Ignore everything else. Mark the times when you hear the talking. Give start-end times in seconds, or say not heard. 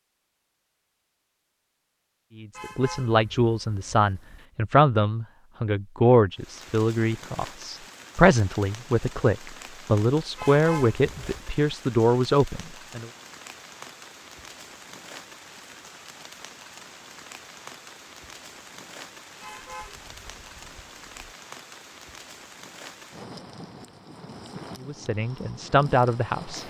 2.4-13.1, 24.8-26.6.